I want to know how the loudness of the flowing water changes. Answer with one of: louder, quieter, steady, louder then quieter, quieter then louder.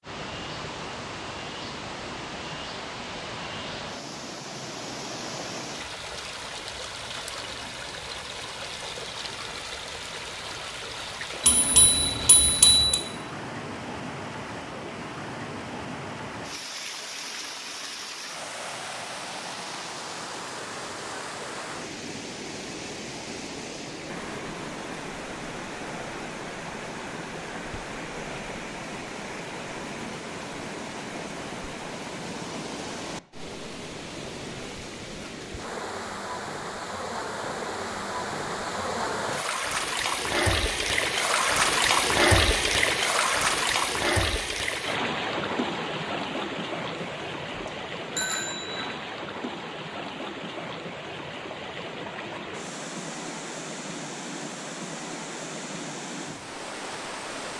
louder then quieter.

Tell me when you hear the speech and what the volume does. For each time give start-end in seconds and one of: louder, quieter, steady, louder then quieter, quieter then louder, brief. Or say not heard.
not heard.